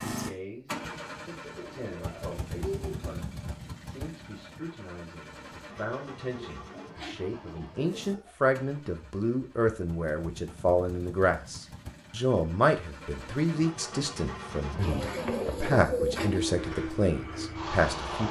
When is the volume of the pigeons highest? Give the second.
16 s.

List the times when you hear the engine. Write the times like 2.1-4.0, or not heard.
0.0-18.2.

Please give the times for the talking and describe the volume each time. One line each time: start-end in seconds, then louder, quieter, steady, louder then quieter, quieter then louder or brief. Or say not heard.
0.1-18.2 louder.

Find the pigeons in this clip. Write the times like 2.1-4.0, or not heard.
1.4-3.0, 6.3-8.3, 14.8-16.4.